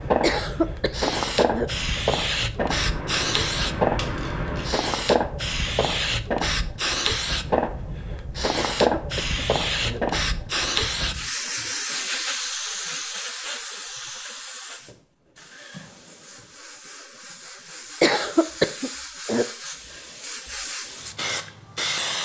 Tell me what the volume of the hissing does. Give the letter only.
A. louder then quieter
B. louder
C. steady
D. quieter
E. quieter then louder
D.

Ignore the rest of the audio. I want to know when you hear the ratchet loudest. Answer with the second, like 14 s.
4 s.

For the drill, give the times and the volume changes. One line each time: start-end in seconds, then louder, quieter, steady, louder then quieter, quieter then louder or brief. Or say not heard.
not heard.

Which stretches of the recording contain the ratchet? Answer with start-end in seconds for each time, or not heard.
2.5-4.8.